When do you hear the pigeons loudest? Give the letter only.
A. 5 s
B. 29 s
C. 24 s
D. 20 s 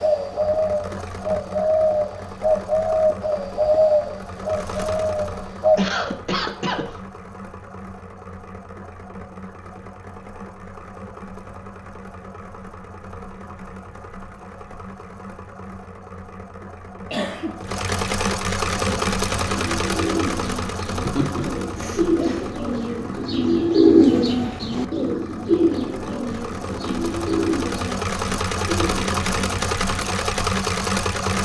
C.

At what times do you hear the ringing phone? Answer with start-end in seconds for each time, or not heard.
not heard.